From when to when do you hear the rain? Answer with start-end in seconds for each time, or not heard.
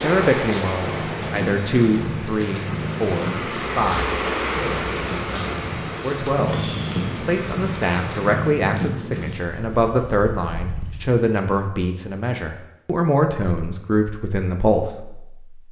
0.0-8.6.